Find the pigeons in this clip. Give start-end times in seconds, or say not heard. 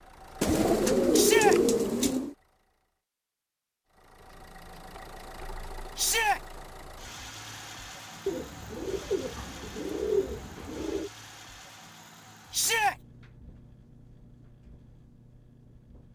0.4-2.4, 8.2-11.1.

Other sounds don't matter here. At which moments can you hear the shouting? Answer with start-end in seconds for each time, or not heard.
1.1-1.6, 6.0-6.4, 12.5-12.9.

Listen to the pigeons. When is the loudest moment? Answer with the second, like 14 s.
1 s.